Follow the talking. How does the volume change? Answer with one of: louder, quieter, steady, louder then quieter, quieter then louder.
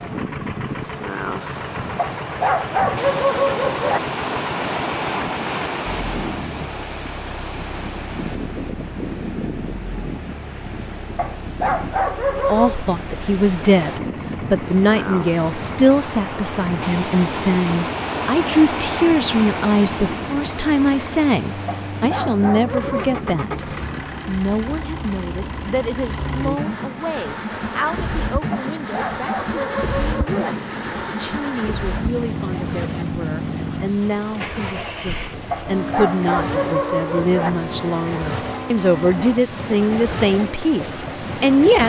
quieter then louder.